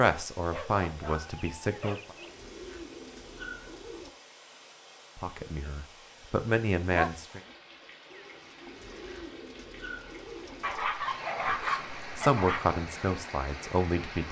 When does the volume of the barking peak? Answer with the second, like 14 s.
12 s.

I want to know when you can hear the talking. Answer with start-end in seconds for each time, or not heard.
0.0-2.1, 5.2-7.4, 11.4-14.2.